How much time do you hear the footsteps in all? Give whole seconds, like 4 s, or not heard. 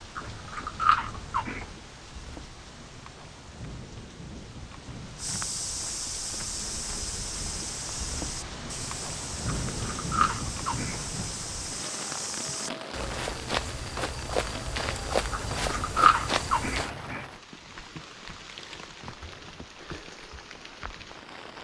12 s.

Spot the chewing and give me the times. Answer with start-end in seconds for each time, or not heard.
0.1-1.6, 9.7-11.2, 15.3-17.2.